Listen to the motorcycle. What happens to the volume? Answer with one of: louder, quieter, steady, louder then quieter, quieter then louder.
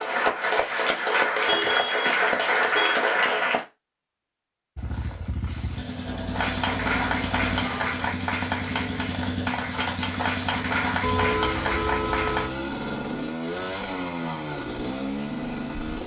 steady.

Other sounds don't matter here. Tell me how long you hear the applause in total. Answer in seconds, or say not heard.
10 s.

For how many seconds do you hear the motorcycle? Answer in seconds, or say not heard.
11 s.